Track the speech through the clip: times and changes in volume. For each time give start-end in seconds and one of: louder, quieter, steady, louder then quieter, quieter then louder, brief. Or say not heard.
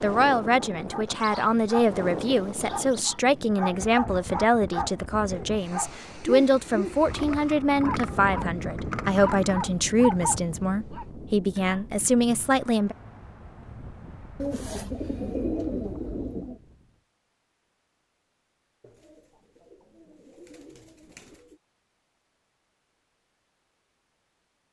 0.0-12.9 steady.